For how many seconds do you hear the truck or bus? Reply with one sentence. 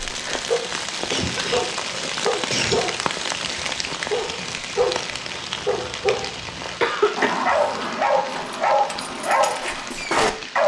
The truck or bus can't be heard in this clip.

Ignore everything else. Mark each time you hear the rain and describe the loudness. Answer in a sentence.
The rain can be heard from 0.0 to 10.6 s, getting quieter.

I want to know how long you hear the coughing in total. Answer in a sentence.
You can hear the coughing for 3 seconds altogether.